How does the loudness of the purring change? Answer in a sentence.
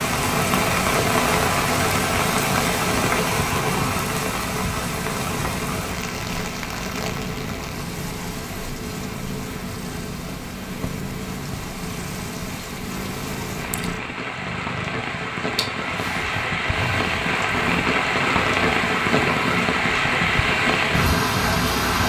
The volume of the purring stays about the same.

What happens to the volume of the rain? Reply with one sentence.
The loudness of the rain goes down, then up.